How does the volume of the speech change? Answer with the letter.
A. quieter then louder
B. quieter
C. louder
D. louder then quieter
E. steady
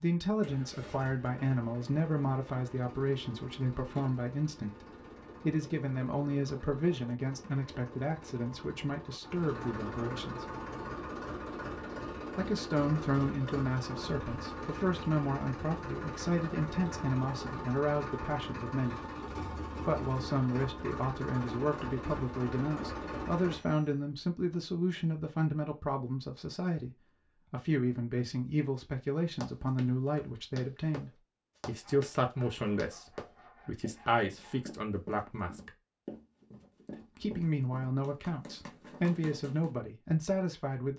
E.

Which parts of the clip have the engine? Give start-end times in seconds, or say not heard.
0.4-24.0.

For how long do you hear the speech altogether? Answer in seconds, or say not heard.
37 s.